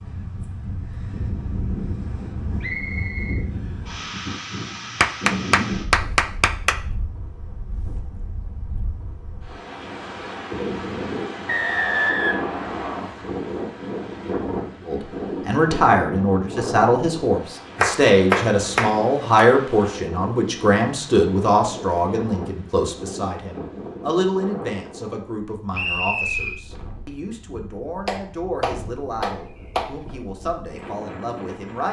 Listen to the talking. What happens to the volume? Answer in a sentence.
The loudness of the talking goes down.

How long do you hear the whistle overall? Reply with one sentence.
The whistle can be heard for 4 seconds in total.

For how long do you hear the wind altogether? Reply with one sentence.
The wind can be heard for 32 seconds in total.